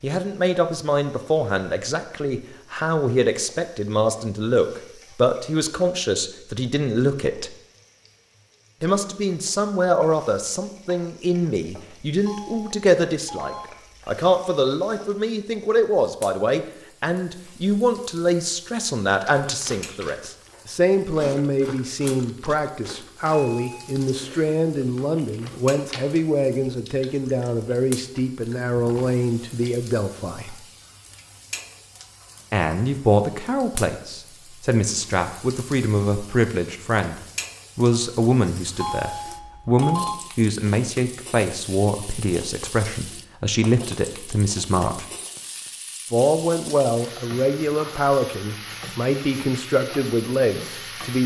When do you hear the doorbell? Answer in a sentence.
You can hear the doorbell from 12.2 to 14.2 s, from 23.3 to 23.9 s and from 38.8 to 40.1 s.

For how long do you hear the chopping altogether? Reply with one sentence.
You can't hear the chopping here.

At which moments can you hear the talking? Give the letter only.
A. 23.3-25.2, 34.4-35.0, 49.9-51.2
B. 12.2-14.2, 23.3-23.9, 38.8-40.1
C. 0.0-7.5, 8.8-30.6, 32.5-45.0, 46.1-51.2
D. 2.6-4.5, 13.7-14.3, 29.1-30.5
C.